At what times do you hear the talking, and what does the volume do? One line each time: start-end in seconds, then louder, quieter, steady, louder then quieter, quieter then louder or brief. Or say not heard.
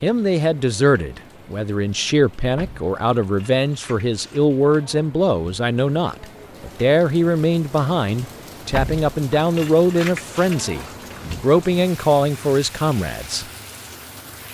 0.0-13.4 steady.